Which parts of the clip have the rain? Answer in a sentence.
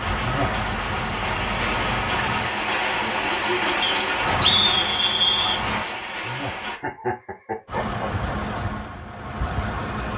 The rain can be heard from 0.0 to 6.8 s.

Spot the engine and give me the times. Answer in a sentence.
The engine can be heard from 0.0 to 2.5 s, from 4.2 to 5.8 s and from 7.7 to 10.1 s.